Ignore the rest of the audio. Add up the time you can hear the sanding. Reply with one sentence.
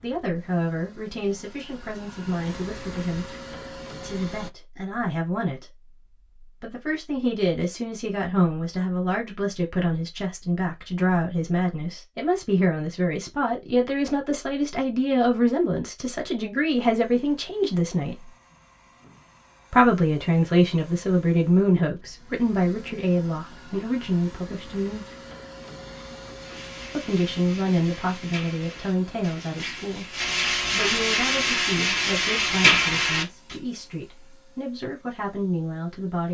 The sanding can be heard for 7 seconds in total.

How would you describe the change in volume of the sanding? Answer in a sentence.
The loudness of the sanding goes up.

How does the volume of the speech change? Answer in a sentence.
The volume of the speech goes up, then down.